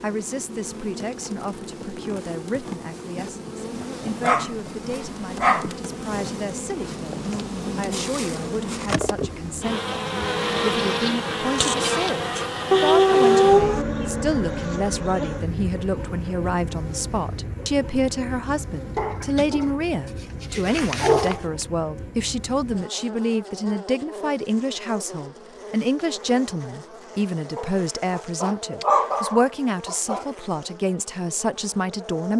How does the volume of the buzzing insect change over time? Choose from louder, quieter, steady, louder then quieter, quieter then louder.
louder then quieter.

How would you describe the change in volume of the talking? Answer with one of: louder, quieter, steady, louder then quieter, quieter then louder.
louder.